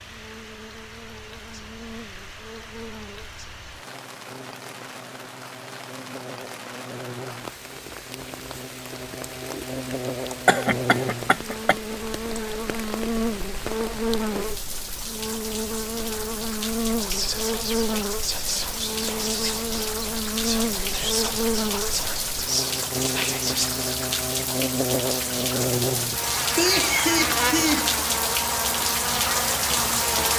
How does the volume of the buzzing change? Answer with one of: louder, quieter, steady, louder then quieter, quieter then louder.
louder.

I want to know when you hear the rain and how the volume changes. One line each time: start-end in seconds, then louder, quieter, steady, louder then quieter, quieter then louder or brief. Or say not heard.
0.0-30.3 louder.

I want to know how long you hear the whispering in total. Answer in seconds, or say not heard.
7 s.